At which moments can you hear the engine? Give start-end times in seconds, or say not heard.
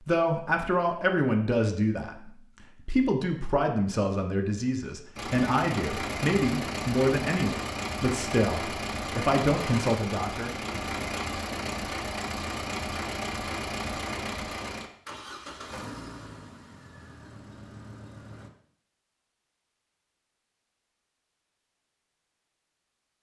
5.2-18.5.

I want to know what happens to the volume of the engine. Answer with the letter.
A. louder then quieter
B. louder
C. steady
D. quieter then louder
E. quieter
E.